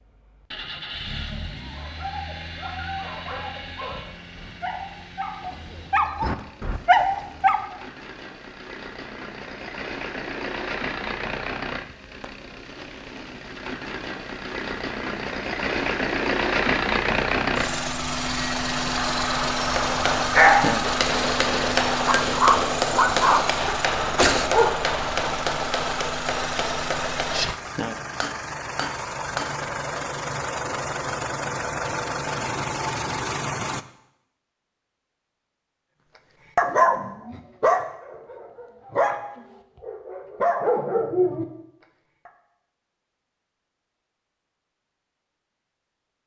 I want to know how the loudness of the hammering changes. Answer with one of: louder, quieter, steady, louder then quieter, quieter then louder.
quieter.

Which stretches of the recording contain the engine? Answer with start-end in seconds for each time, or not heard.
0.0-33.9.